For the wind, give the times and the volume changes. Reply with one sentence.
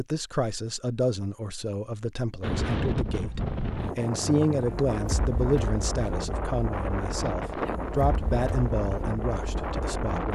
You can hear the wind from 2.4 to 10.2 s, at a steady volume.